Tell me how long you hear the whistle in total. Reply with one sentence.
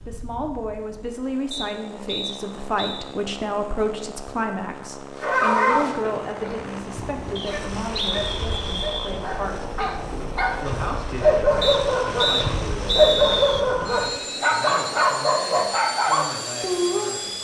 The whistle can be heard for 5 seconds in total.